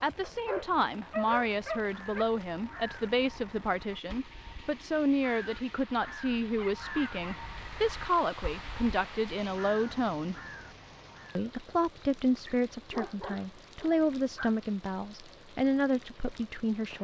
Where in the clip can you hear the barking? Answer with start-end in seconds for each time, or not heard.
0.2-2.2, 6.0-7.5, 12.4-14.6.